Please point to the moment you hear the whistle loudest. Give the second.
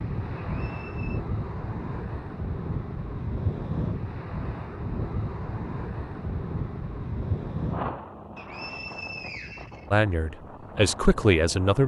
9 s.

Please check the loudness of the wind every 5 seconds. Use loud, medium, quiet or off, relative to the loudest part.
loud, loud, medium.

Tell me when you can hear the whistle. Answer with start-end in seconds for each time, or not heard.
0.5-1.2, 8.3-9.9.